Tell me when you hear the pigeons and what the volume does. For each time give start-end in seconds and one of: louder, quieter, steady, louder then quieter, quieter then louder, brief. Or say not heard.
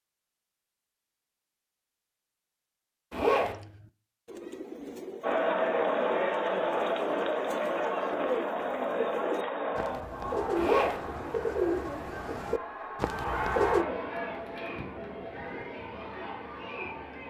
3.4-13.8 louder.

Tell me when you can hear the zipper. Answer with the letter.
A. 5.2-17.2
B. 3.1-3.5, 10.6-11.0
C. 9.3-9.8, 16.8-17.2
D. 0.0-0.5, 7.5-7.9
B.